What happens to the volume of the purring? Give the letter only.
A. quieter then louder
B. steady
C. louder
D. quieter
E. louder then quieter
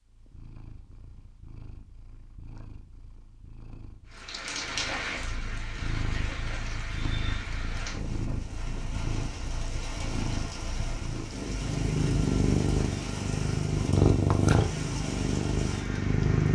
C.